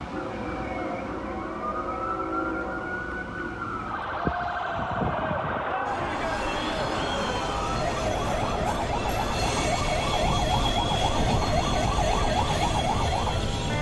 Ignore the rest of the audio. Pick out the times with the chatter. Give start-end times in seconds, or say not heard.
3.8-13.7.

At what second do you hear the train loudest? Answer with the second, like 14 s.
11 s.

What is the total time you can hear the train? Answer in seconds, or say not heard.
14 s.